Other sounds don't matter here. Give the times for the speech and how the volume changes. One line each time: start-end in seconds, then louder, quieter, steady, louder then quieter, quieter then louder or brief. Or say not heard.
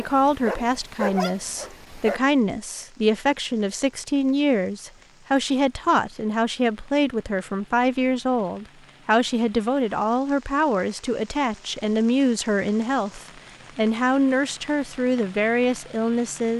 0.0-16.5 steady.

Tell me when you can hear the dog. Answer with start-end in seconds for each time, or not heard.
0.0-2.2.